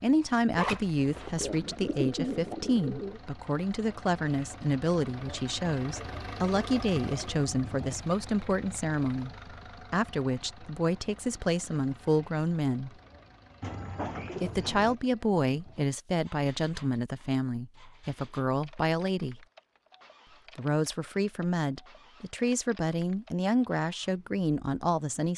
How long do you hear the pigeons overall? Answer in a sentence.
You can hear the pigeons for 3 seconds altogether.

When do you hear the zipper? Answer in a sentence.
The zipper can be heard from 0.6 to 1.8 s.